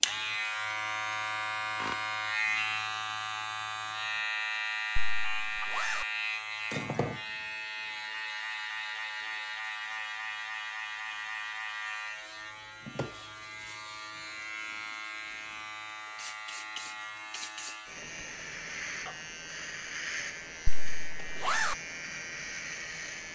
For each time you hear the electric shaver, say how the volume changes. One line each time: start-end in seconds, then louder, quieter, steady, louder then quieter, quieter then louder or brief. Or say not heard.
0.0-23.3 quieter.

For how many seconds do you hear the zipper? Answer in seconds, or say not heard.
2 s.